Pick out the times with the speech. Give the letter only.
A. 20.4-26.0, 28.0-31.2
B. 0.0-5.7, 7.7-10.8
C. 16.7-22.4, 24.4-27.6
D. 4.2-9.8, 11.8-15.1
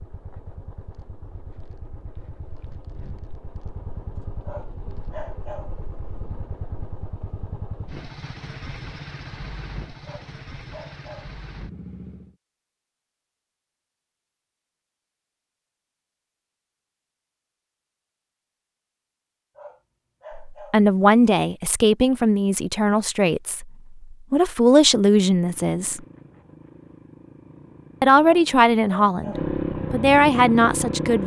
A.